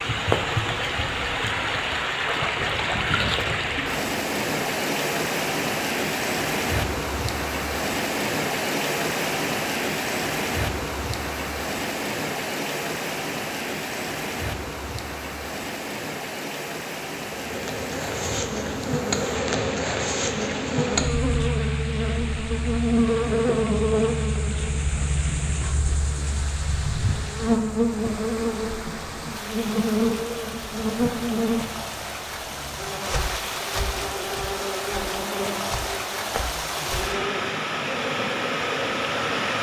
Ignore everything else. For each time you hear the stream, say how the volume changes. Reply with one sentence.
The stream can be heard from 0.0 to 39.5 s, getting quieter then louder.